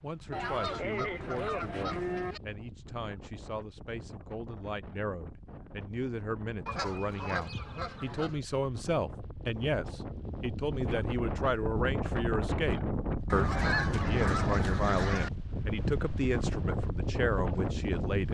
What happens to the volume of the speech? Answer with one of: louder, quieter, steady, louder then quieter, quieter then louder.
louder.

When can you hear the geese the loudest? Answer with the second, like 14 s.
14 s.